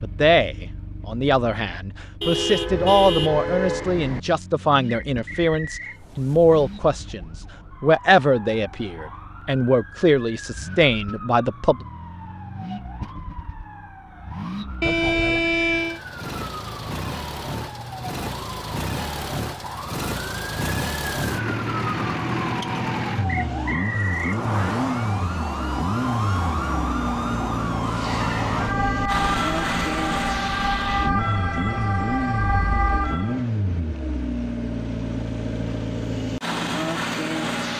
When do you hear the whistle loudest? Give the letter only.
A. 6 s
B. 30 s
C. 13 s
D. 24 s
D.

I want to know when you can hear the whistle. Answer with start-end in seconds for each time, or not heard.
5.0-6.0, 23.2-24.4.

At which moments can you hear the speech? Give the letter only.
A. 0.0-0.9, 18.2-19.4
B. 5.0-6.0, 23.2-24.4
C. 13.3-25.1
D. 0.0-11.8
D.